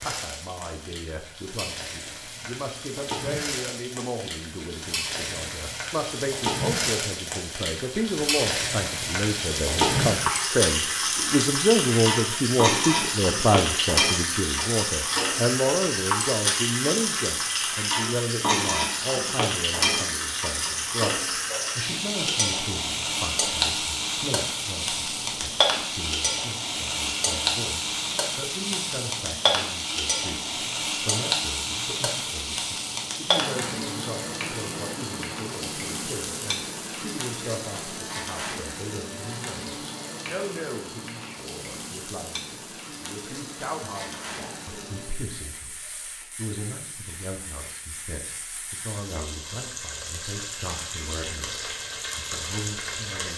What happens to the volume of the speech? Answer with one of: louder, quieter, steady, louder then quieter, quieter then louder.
louder then quieter.